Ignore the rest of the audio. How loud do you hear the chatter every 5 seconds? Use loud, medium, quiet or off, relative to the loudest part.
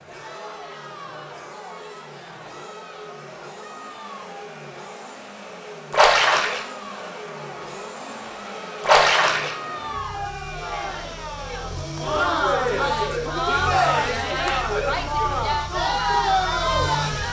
quiet, quiet, loud, loud.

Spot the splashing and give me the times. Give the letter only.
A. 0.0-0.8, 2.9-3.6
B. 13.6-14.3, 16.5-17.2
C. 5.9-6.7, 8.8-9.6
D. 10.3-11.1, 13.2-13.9
C.